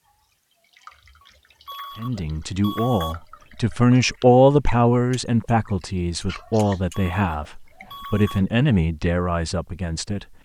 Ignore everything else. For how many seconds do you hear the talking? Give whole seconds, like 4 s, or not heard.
8 s.